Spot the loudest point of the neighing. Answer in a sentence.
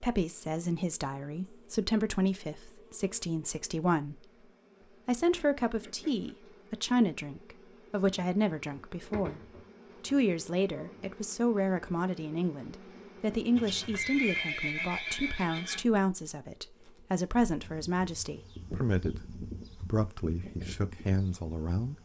The volume of the neighing peaks at 14 seconds.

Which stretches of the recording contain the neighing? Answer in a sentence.
The neighing can be heard from 13.6 to 15.8 s.